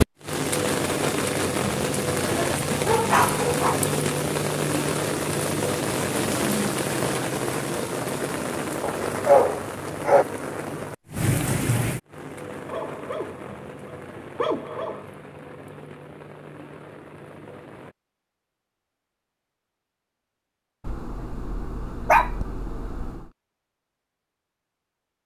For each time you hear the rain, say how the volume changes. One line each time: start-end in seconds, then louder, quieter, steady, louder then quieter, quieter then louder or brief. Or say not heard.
0.0-17.9 quieter.